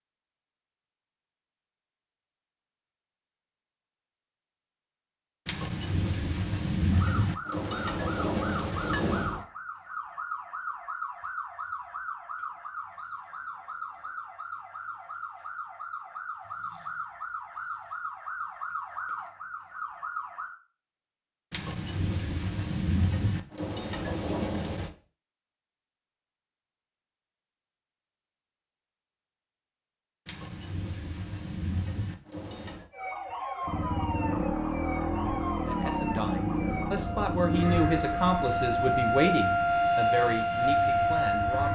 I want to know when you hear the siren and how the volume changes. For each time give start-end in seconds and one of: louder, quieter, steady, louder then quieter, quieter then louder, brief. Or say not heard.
6.8-20.6 steady
32.9-41.7 louder.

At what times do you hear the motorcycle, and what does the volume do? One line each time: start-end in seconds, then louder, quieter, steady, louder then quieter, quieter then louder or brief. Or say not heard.
33.6-41.7 quieter.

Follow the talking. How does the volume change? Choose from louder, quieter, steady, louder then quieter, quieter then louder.
louder then quieter.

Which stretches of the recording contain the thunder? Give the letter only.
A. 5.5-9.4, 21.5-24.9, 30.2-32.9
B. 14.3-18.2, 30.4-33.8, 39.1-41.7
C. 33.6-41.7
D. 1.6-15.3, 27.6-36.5
A.